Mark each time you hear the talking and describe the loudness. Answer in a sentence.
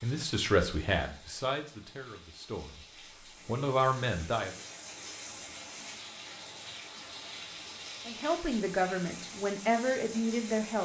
You can hear the talking from 0.0 to 4.5 s, getting quieter then louder; and briefly from 8.1 to 10.8 s.